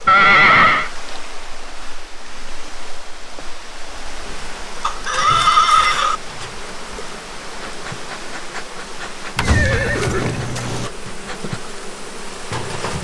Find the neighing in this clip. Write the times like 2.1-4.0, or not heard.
0.1-0.9, 4.8-6.2, 9.3-10.9.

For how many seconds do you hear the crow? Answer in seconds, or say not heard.
not heard.